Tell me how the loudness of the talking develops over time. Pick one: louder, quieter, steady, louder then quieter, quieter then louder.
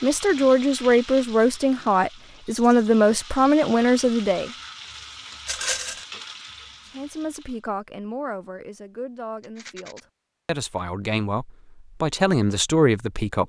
quieter then louder.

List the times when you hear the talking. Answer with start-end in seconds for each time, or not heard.
0.0-4.5, 7.0-13.4.